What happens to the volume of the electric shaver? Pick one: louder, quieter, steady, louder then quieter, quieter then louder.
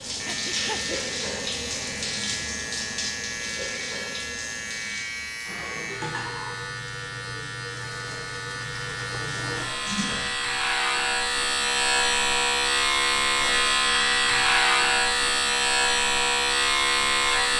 louder.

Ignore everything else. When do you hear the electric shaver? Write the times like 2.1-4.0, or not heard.
0.1-17.5.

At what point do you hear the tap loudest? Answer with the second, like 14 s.
1 s.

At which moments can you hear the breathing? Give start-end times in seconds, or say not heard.
0.2-1.0.